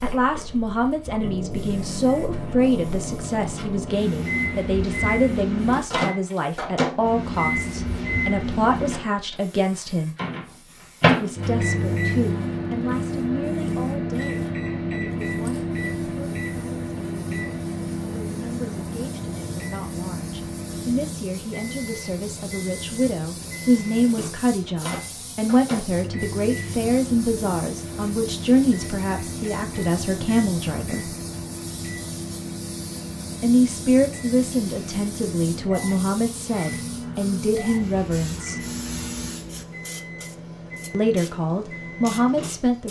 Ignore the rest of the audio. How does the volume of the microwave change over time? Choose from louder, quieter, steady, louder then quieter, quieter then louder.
quieter.